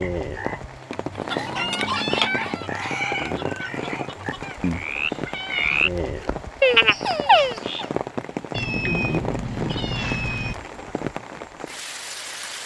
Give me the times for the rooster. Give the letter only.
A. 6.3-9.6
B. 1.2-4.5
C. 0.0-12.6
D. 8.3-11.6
B.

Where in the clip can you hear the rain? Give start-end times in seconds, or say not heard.
0.0-12.6.